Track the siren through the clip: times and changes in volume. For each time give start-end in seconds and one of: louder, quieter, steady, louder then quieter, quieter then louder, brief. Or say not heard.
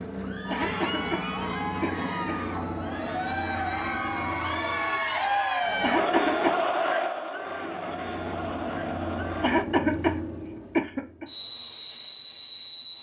not heard.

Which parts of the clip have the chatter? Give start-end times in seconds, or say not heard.
0.1-9.7.